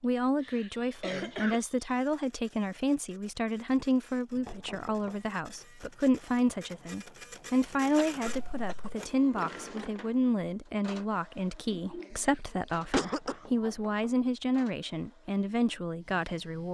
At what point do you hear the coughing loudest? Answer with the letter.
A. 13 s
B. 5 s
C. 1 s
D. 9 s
A.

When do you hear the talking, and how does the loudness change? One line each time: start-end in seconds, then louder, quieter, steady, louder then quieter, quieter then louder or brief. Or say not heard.
0.0-16.6 steady.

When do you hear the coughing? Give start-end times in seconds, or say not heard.
0.4-1.6, 8.0-9.0, 11.7-13.7.